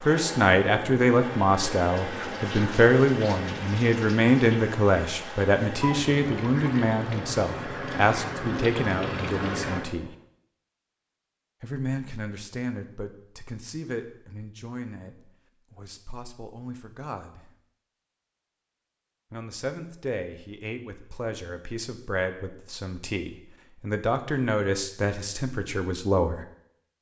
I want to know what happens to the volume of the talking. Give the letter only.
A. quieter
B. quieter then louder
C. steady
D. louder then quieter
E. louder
B.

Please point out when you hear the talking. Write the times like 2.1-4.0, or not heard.
0.1-10.2, 11.6-17.5, 19.3-26.4.